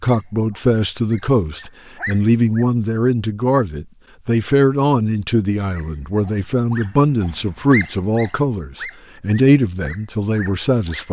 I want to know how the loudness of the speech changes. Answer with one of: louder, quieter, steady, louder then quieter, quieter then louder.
steady.